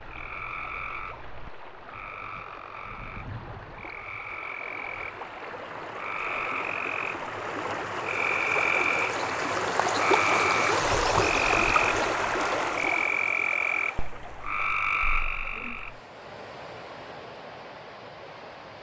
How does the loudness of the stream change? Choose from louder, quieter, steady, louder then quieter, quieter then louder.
louder then quieter.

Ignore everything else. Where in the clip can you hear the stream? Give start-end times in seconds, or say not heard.
0.0-18.7.